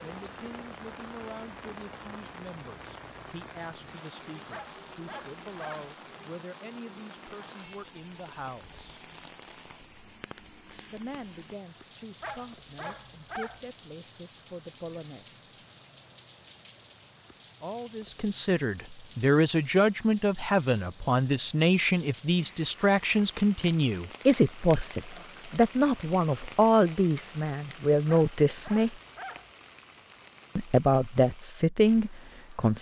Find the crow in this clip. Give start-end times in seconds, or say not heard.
not heard.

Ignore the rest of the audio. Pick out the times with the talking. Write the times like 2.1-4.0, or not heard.
0.0-9.0, 10.8-15.4, 17.6-28.9, 30.6-32.7.